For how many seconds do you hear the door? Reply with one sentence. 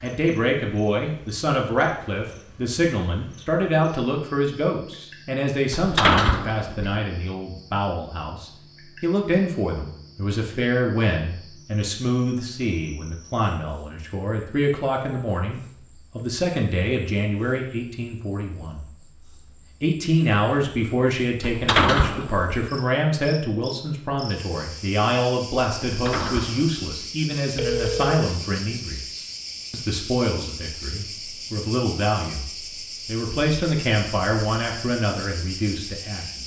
The door can be heard for 3 seconds in total.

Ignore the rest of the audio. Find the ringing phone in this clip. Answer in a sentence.
You can hear the ringing phone from 27.6 to 28.3 s.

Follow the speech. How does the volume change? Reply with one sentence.
The volume of the speech stays about the same.